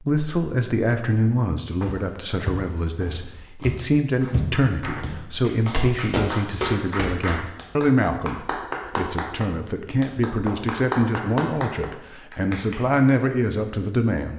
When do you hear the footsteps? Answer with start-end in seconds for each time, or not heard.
1.8-7.3.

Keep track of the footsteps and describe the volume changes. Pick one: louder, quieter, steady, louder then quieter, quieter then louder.
louder.